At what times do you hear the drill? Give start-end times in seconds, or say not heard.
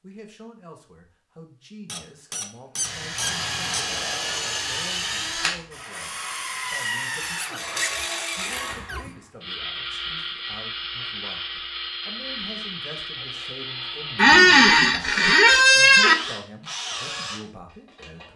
2.8-18.3.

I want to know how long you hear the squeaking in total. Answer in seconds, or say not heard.
6 s.